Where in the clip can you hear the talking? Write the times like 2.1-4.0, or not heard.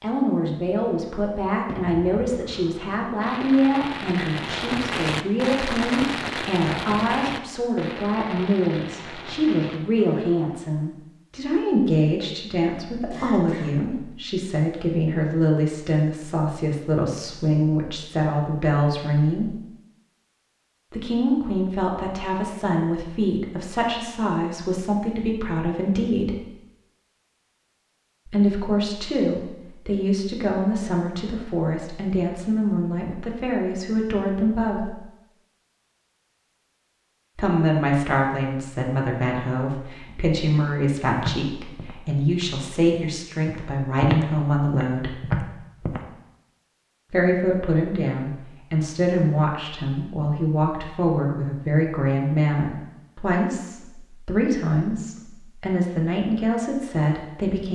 0.0-19.6, 20.9-26.4, 28.2-34.9, 37.4-45.1, 47.1-57.7.